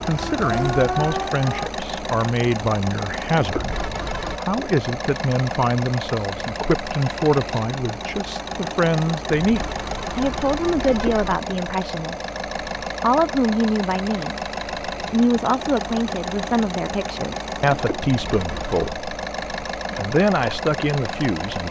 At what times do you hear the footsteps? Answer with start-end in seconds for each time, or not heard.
not heard.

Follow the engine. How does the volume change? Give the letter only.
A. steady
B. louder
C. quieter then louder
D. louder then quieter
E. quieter
A.